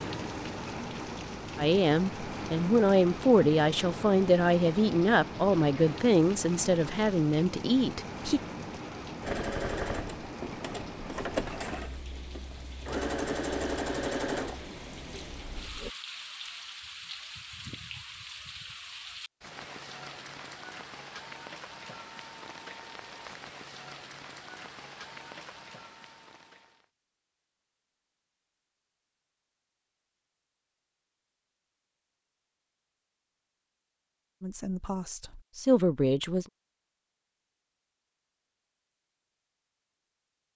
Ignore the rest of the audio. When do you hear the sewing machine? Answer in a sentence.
The sewing machine can be heard from 9.2 to 15.9 s.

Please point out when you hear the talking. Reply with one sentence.
The talking can be heard from 1.6 to 8.4 s and from 34.4 to 36.5 s.